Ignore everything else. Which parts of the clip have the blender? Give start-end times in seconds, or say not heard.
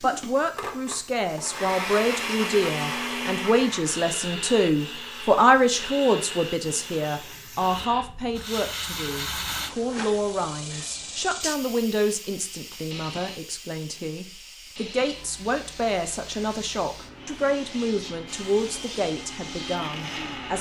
0.0-8.1, 17.1-20.5.